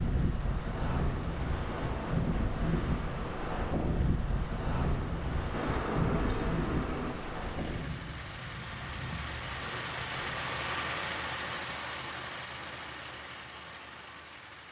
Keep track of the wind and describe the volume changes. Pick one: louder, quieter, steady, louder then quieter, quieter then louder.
quieter.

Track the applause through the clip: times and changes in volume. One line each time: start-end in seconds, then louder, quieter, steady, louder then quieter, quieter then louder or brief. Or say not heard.
not heard.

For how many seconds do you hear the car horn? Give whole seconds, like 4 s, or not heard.
2 s.